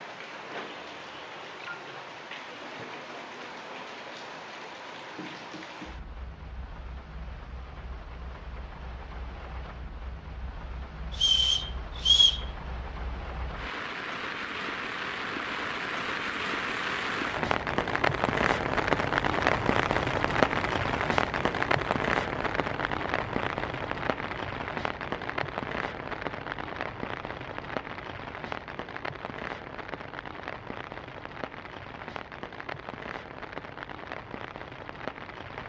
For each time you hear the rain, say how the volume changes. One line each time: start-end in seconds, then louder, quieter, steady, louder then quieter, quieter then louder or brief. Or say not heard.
0.0-35.6 louder then quieter.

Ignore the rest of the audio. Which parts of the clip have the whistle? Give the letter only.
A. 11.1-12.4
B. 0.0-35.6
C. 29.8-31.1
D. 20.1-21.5
A.